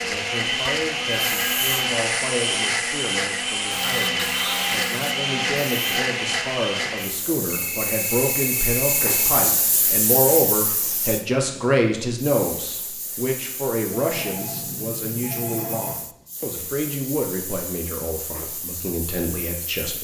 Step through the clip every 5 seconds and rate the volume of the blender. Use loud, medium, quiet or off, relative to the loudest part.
loud, loud, off, off.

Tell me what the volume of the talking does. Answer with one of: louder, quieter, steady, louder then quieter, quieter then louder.
louder then quieter.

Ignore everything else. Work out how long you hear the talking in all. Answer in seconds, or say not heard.
20 s.